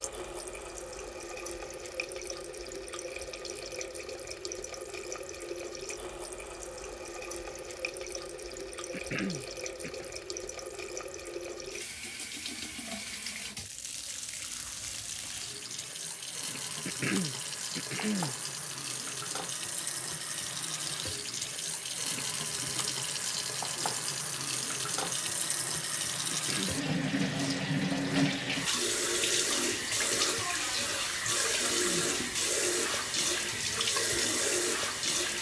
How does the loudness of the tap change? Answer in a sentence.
The loudness of the tap goes up.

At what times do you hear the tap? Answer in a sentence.
You can hear the tap from 0.0 to 35.3 s.